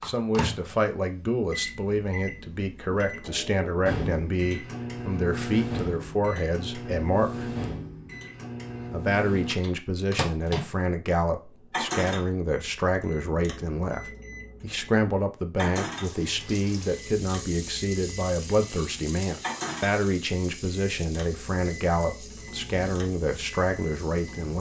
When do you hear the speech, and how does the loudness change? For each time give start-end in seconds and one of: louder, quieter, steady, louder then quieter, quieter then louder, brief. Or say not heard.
0.0-7.5 steady
8.9-24.5 steady.